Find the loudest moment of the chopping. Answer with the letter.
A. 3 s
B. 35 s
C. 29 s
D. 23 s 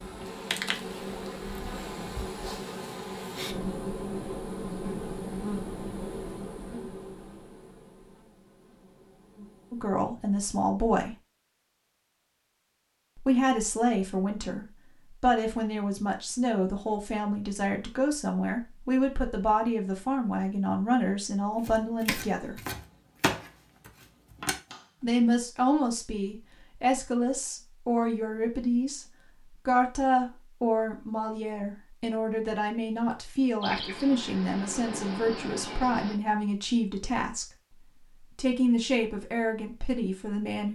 D.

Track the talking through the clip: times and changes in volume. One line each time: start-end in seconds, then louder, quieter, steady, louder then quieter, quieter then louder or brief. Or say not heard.
9.7-11.2 brief
13.2-22.6 steady
25.0-40.6 steady.